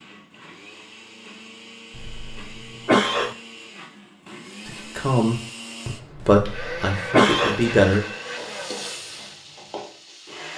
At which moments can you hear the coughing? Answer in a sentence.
The coughing can be heard from 1.9 to 3.4 s and from 6.2 to 7.6 s.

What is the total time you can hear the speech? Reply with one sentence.
The speech can be heard for 3 seconds in total.